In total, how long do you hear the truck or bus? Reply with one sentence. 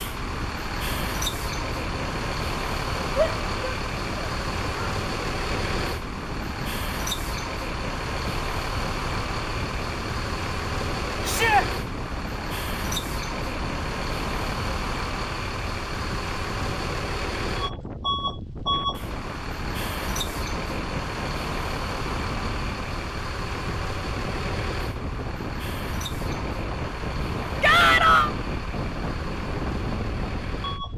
You can hear the truck or bus for 31 seconds altogether.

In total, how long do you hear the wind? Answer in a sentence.
The wind can be heard for 31 seconds in total.